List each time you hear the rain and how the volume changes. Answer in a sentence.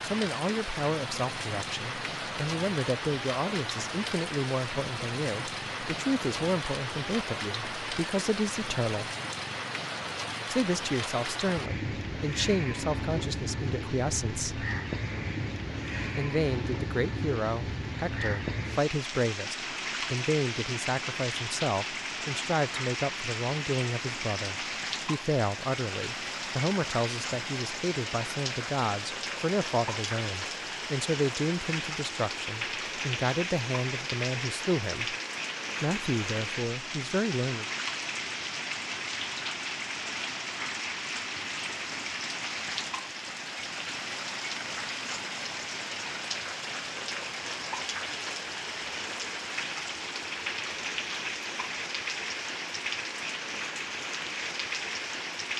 The rain can be heard from 0.0 to 55.5 s, at a steady volume.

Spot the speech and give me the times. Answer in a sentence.
The speech can be heard from 0.0 to 9.1 s, from 10.5 to 14.7 s, from 16.1 to 35.1 s and from 35.8 to 37.6 s.